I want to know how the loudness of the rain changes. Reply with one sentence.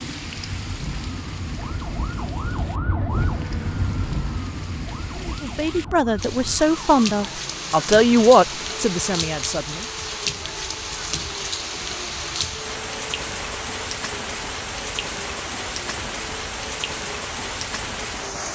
The volume of the rain goes up.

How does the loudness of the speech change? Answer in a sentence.
The volume of the speech goes up, then down.